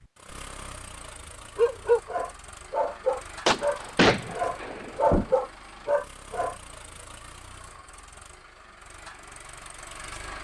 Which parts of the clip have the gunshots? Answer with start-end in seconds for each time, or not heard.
3.5-5.3.